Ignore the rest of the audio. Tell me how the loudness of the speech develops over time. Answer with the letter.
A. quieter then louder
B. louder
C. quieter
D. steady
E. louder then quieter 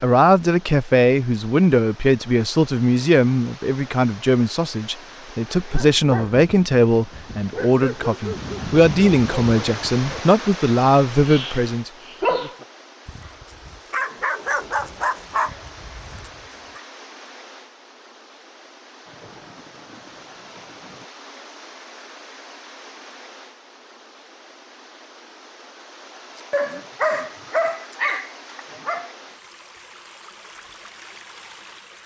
D.